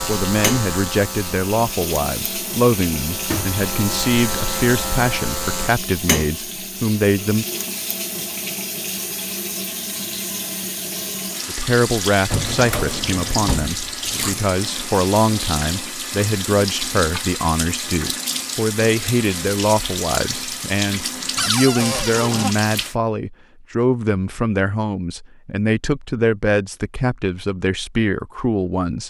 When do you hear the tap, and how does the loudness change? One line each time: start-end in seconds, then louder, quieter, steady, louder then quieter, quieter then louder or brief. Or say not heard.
0.0-22.9 steady.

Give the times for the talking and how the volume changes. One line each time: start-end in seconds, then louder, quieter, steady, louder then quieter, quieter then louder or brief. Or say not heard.
0.1-7.5 steady
11.4-29.0 steady.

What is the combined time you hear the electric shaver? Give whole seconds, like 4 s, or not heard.
6 s.